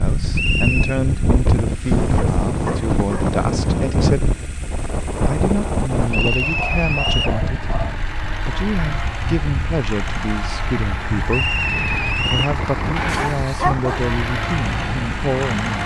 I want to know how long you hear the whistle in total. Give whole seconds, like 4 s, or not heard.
3 s.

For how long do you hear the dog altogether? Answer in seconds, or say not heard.
4 s.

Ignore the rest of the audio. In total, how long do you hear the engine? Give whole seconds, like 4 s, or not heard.
16 s.